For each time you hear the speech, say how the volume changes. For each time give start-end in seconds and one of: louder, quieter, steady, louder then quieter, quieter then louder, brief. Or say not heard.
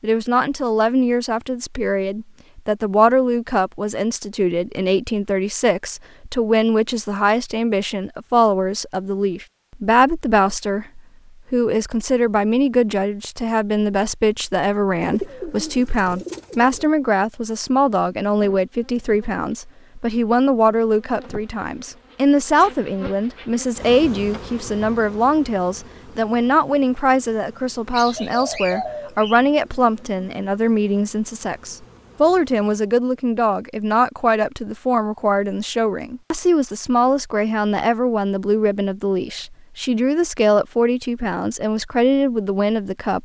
0.0-43.1 steady.